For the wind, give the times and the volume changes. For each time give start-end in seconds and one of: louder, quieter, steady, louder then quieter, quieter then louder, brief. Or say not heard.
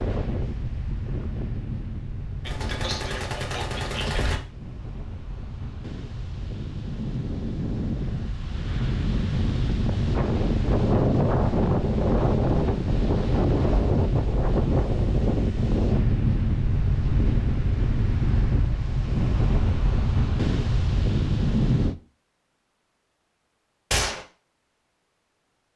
0.0-21.9 louder.